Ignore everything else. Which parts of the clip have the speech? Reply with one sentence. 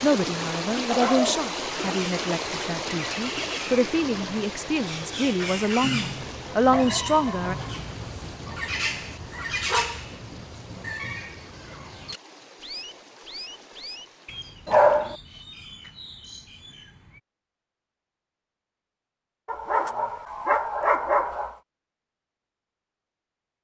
The speech can be heard from 0.0 to 7.5 s.